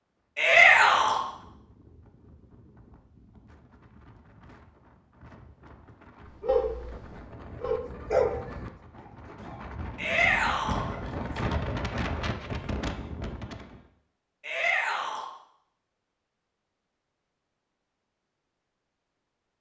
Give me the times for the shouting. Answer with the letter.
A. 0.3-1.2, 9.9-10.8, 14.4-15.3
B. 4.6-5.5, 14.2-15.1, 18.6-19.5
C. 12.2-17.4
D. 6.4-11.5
A.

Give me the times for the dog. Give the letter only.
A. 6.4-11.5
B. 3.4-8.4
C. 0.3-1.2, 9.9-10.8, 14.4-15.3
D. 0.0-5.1
A.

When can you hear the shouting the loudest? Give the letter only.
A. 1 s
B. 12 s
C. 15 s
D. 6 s
A.